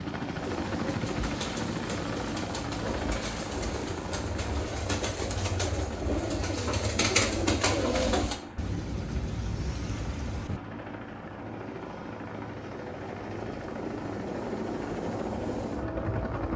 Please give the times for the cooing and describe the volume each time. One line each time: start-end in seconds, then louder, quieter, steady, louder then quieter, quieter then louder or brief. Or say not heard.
0.3-8.3 louder.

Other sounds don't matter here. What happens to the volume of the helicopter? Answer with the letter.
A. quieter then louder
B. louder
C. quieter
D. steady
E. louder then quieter
A.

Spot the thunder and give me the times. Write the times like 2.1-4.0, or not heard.
8.6-10.6.